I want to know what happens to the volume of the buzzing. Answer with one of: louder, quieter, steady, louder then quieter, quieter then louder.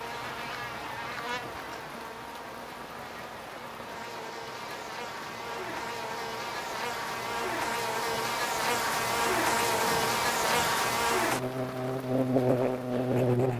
louder.